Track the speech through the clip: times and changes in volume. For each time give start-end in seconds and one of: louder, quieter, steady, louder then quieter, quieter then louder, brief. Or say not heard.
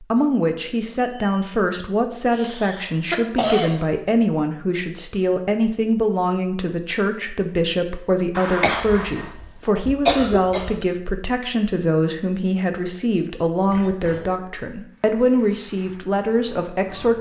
0.0-17.1 steady.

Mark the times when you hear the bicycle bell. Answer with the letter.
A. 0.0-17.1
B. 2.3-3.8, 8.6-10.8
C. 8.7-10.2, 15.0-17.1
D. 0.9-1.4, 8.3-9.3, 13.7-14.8
D.